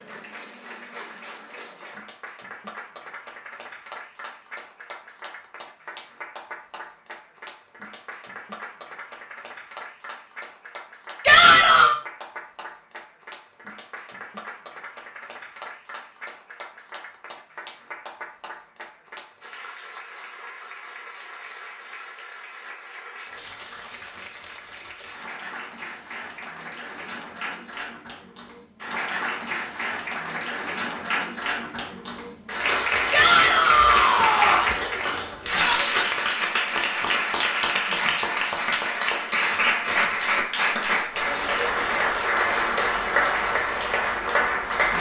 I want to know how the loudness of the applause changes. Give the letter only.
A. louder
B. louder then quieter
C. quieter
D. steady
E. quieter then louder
A.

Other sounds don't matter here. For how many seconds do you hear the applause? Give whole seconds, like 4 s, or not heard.
45 s.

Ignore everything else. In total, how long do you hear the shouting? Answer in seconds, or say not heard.
2 s.